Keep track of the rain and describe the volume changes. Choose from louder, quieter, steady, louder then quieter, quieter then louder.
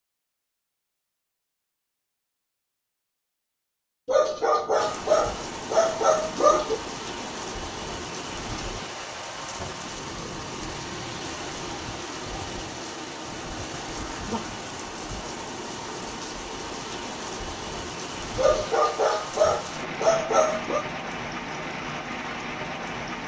steady.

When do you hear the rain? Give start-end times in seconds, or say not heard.
4.8-23.2.